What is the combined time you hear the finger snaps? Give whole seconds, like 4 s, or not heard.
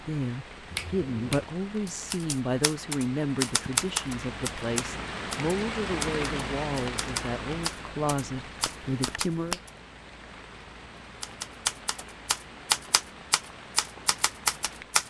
2 s.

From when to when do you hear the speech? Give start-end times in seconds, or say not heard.
0.0-9.6.